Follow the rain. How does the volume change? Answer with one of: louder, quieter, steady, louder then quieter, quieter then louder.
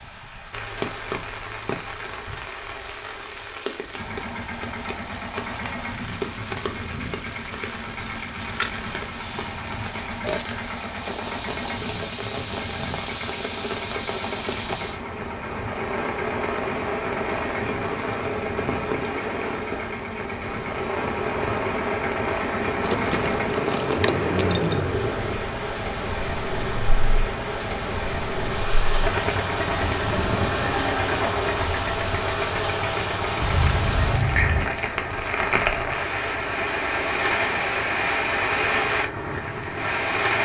louder.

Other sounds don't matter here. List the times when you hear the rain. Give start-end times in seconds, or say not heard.
0.0-40.3.